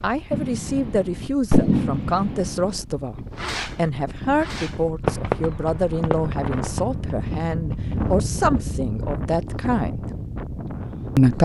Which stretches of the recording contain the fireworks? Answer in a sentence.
The fireworks can be heard from 0.3 to 8.1 s.